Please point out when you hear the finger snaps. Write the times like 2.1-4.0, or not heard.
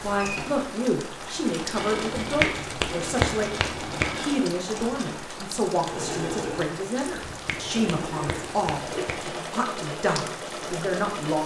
2.1-4.2, 7.2-9.2.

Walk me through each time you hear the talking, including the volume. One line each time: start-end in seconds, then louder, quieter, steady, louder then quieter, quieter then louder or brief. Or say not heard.
0.0-11.4 steady.